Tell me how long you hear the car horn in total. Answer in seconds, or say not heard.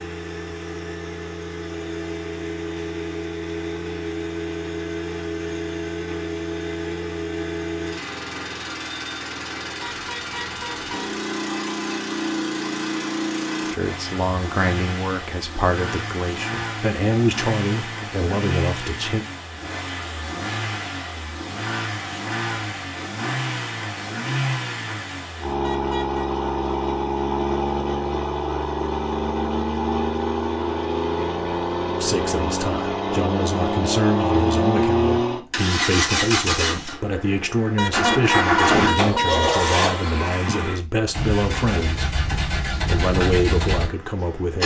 4 s.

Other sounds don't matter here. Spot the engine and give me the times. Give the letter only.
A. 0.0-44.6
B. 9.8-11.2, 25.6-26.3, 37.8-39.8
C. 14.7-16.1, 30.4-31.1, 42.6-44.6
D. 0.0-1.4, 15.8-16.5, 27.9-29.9
A.